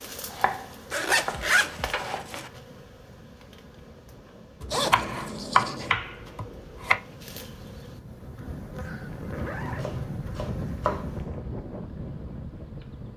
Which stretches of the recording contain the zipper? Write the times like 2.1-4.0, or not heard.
0.9-2.5, 4.7-6.0, 9.1-11.4.